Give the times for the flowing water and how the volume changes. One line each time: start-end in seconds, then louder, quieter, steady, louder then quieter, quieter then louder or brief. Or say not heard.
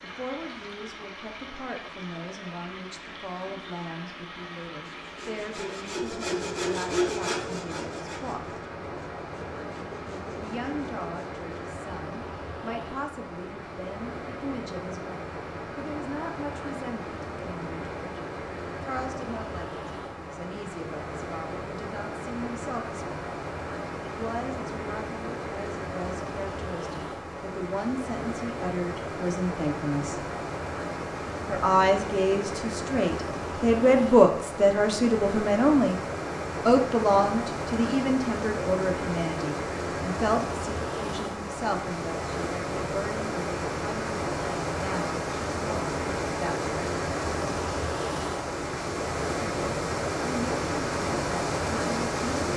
0.0-52.5 louder.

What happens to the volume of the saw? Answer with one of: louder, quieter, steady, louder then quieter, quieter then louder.
louder then quieter.